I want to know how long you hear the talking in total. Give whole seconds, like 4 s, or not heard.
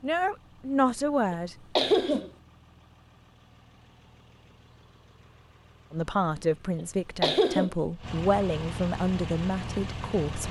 7 s.